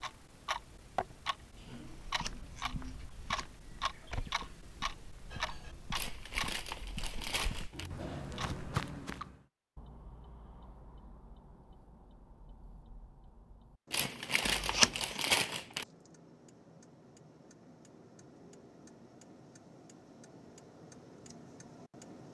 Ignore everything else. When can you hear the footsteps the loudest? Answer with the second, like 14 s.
9 s.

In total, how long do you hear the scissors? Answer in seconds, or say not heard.
2 s.